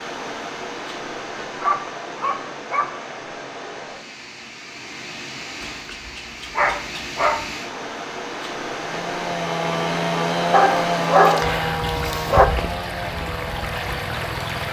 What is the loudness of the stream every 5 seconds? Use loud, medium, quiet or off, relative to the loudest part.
medium, loud, loud.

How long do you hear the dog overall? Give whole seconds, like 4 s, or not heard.
5 s.